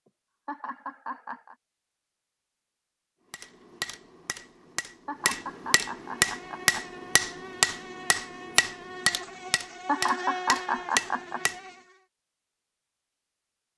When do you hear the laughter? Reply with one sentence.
The laughter can be heard from 0.5 to 1.6 s, from 5.0 to 6.8 s and from 9.8 to 11.4 s.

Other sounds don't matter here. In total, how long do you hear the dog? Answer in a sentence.
The dog can't be heard in this clip.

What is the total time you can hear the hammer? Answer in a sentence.
The hammer can be heard for 8 seconds in total.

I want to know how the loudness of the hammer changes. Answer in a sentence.
The volume of the hammer goes up.